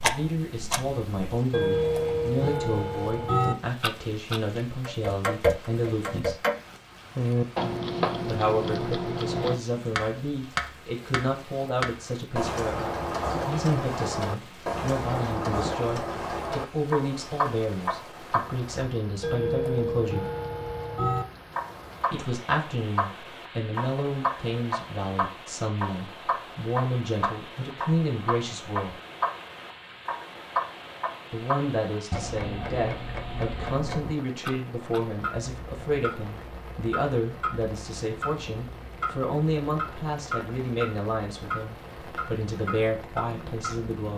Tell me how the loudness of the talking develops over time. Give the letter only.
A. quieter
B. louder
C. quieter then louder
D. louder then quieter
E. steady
E.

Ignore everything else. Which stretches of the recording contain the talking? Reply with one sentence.
The talking can be heard from 0.0 to 6.4 s, from 8.2 to 20.2 s, from 22.1 to 28.9 s and from 31.3 to 44.1 s.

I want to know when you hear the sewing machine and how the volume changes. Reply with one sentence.
The sewing machine can't be heard in this clip.